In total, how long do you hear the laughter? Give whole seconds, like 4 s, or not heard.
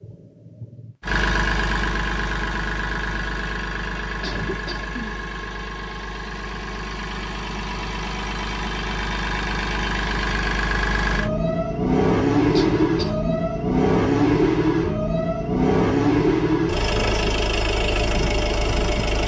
2 s.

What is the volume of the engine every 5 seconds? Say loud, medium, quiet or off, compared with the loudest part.
medium, medium, loud, loud.